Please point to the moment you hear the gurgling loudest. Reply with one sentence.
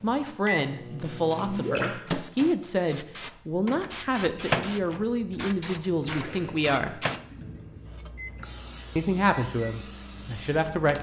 The volume of the gurgling peaks at 2 seconds.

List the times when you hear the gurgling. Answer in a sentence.
The gurgling can be heard from 1.4 to 2.0 s and from 6.0 to 7.8 s.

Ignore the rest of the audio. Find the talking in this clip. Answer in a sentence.
You can hear the talking from 0.0 to 7.0 s and from 8.9 to 10.9 s.